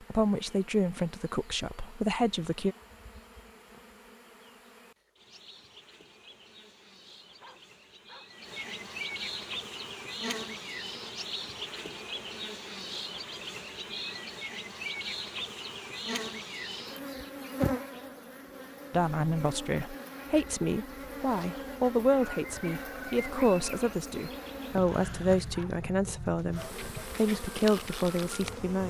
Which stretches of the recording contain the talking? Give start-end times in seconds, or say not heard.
0.1-2.8, 18.9-28.8.